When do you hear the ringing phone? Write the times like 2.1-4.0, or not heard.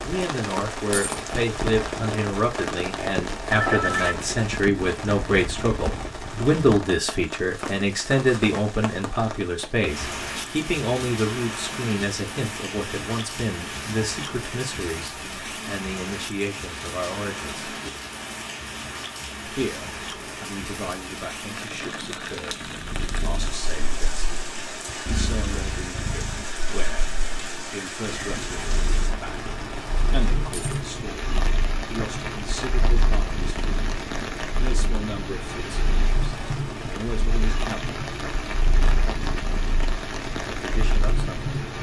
3.5-4.3.